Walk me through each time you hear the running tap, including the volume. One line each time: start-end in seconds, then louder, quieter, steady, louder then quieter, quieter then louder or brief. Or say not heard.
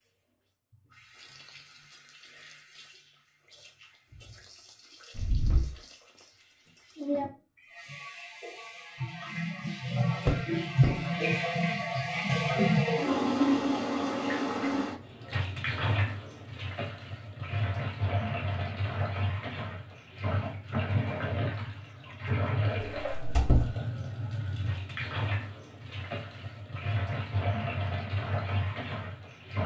0.0-29.6 louder then quieter.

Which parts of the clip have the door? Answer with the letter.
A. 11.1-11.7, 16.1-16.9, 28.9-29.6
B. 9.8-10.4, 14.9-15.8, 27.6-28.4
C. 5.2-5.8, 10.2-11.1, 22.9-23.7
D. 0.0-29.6
C.